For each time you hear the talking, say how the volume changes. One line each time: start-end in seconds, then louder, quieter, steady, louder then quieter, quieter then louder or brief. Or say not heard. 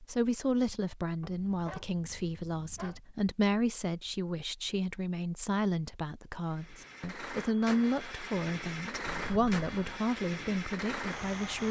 0.0-11.6 steady.